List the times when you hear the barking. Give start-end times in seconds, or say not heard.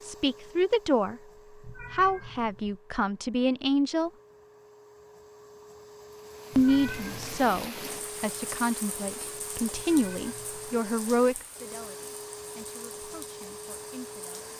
not heard.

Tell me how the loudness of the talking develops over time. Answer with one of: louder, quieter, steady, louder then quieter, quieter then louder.
quieter.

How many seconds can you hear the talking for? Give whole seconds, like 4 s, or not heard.
12 s.